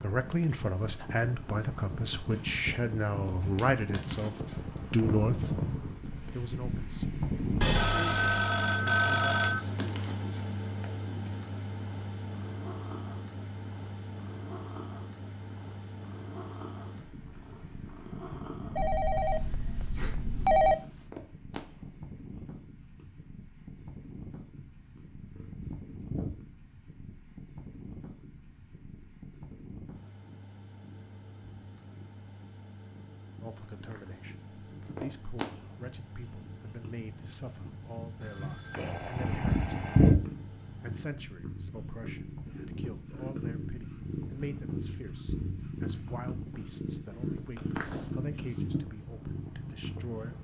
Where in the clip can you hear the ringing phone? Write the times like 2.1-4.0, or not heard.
7.6-9.6, 18.8-20.8, 38.2-40.2.